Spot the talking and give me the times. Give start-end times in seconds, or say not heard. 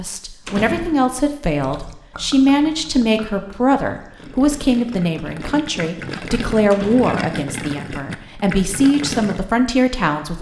0.0-10.3.